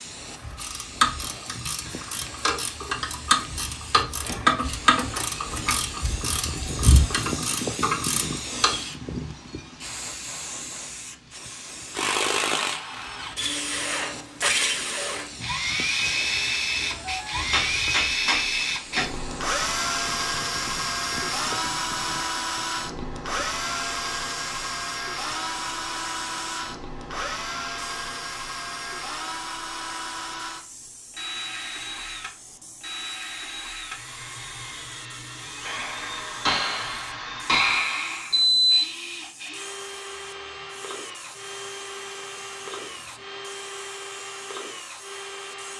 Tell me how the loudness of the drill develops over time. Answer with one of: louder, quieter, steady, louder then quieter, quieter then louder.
quieter.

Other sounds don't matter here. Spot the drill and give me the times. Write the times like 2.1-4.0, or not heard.
11.9-45.7.